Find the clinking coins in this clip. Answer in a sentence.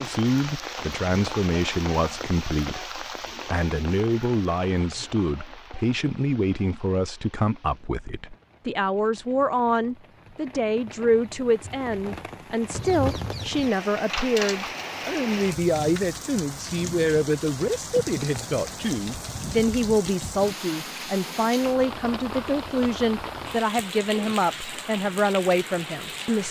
You can hear the clinking coins from 14.1 to 14.8 s.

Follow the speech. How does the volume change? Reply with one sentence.
The volume of the speech stays about the same.